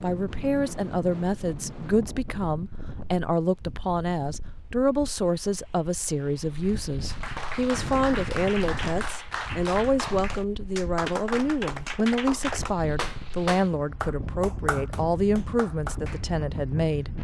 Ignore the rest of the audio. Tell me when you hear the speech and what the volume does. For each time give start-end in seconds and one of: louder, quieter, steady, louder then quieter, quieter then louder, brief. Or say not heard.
0.0-17.1 steady.